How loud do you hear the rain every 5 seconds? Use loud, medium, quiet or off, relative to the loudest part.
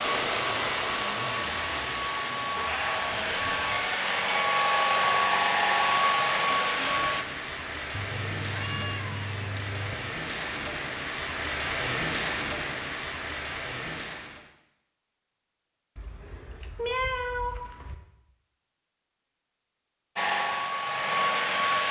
loud, loud, loud, off, off.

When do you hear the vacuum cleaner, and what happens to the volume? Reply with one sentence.
You can hear the vacuum cleaner from 0.0 to 7.2 s, getting louder; and briefly from 20.1 to 21.8 s.